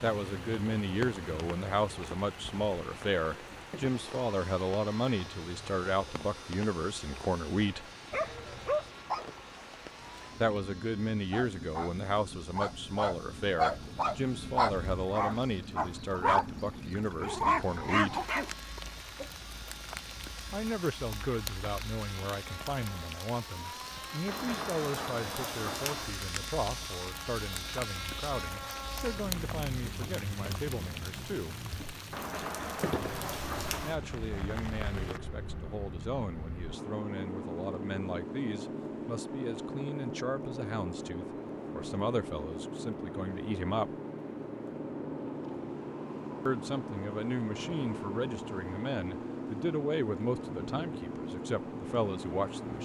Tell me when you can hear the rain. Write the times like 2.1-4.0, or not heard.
0.0-35.2.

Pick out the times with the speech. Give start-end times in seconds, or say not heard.
0.0-7.8, 10.4-18.2, 20.5-31.6, 33.8-43.9, 46.5-52.8.